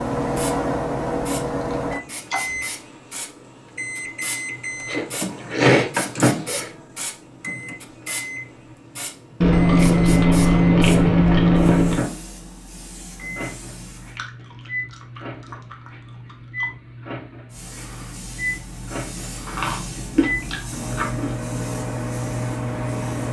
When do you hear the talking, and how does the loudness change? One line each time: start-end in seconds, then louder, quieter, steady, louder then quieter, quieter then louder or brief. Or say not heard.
not heard.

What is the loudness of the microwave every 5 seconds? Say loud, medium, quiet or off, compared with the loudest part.
loud, loud, medium, medium, loud.